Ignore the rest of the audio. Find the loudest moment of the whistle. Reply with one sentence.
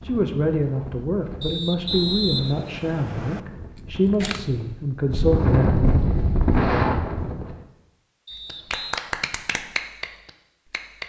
The loudest moment of the whistle is at 2 seconds.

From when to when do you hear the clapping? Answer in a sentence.
The clapping can be heard from 8.3 to 11.0 s.